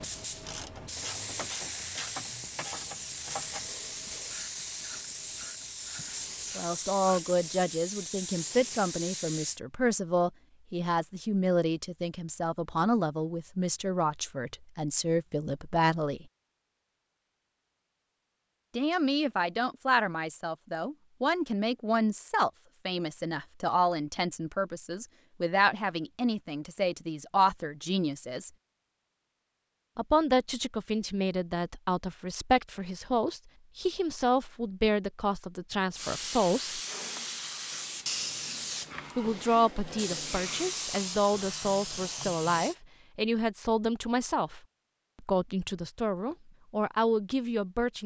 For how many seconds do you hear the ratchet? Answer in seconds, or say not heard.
7 s.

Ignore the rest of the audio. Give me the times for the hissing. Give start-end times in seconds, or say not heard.
0.0-9.6, 35.9-42.8.